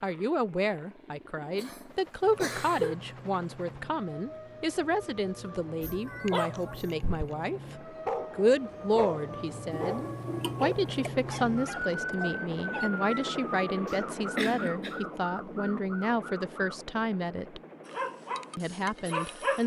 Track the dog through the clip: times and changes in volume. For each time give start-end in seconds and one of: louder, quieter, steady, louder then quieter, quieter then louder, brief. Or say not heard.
5.8-7.3 brief
8.1-13.2 quieter
17.9-19.6 brief.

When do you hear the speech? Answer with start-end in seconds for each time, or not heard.
0.0-17.6, 18.6-19.6.